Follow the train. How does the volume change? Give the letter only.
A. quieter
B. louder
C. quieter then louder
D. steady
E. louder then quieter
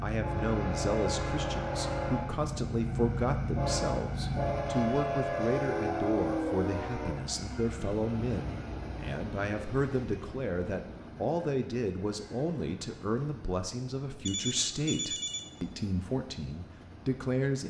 A.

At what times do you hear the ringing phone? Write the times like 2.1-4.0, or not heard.
14.2-15.4.